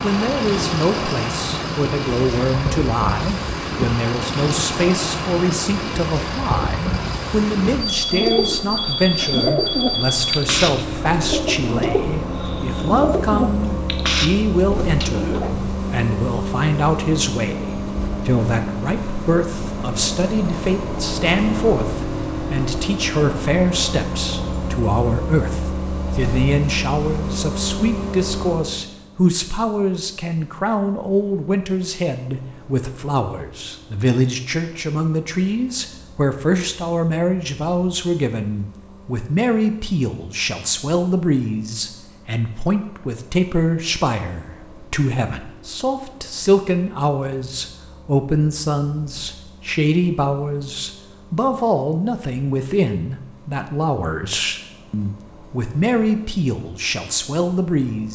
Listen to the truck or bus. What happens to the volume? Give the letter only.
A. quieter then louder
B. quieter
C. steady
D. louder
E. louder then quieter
B.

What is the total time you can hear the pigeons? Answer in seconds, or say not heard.
8 s.